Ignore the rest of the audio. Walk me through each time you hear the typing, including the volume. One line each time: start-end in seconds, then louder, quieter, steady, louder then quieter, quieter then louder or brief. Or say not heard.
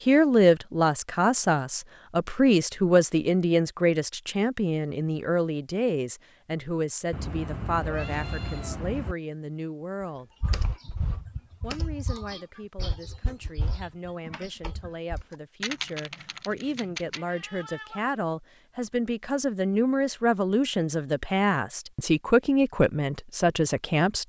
10.4-17.2 quieter then louder.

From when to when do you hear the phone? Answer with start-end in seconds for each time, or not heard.
not heard.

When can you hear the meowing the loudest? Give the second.
8 s.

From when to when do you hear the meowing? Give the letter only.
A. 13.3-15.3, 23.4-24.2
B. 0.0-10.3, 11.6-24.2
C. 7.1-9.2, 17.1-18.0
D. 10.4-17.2
C.